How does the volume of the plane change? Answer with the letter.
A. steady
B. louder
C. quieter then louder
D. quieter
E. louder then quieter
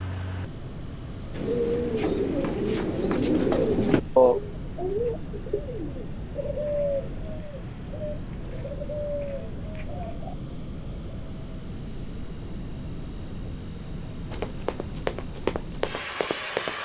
A.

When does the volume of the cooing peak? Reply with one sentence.
The loudest moment of the cooing is at 4 seconds.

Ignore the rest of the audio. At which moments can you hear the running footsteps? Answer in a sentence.
The running footsteps can be heard from 14.3 to 16.7 s.